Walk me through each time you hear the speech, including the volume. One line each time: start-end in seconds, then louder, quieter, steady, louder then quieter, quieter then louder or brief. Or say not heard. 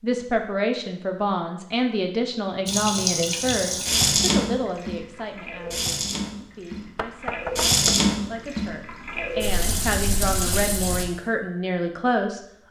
0.0-12.4 quieter then louder.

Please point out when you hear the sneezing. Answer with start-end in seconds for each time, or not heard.
not heard.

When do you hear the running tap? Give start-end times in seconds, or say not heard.
2.6-11.1.